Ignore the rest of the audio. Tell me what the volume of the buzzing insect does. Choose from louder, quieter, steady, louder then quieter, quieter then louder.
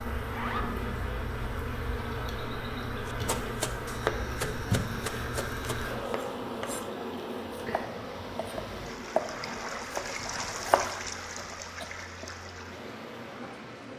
quieter.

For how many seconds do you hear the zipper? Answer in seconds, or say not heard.
2 s.